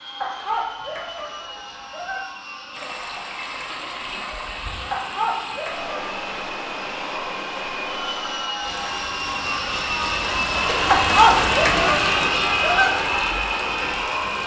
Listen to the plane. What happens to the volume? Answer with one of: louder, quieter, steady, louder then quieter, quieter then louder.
louder.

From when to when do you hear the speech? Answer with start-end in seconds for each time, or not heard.
not heard.